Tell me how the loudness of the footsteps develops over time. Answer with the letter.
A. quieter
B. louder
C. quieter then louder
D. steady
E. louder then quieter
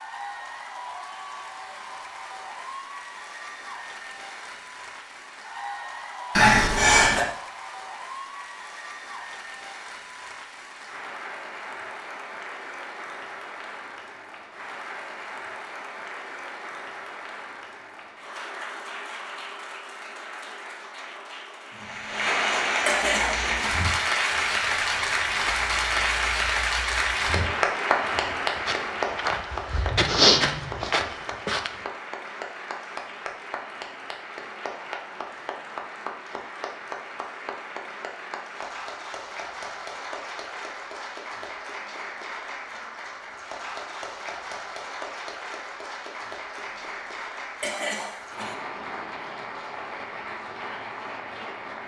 B.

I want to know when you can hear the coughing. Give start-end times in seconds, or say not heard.
6.3-7.2, 22.9-23.8, 47.6-48.5.